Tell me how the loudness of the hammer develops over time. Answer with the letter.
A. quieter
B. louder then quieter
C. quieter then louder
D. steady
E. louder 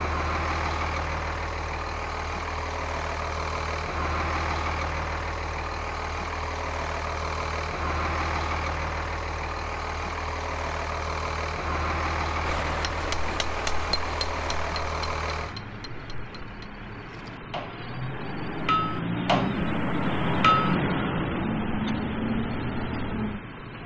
C.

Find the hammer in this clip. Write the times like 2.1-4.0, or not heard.
12.4-20.8.